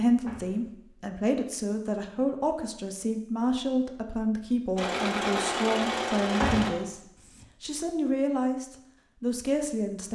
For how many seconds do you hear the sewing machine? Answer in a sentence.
You can hear the sewing machine for 2 seconds altogether.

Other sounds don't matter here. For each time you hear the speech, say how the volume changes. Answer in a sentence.
You can hear the speech from 0.0 to 10.1 s, at a steady volume.